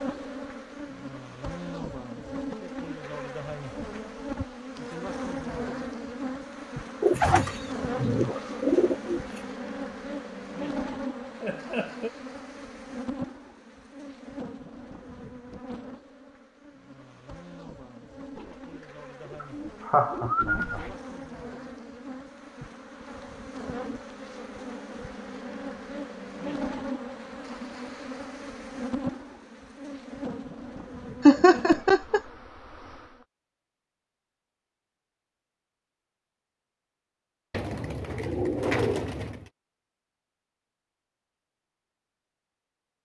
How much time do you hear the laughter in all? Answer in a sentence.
You can hear the laughter for 3 seconds altogether.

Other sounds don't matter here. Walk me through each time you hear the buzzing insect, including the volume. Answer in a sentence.
You can hear the buzzing insect from 0.0 to 33.2 s, getting quieter then louder.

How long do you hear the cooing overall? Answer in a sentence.
You can hear the cooing for 7 seconds altogether.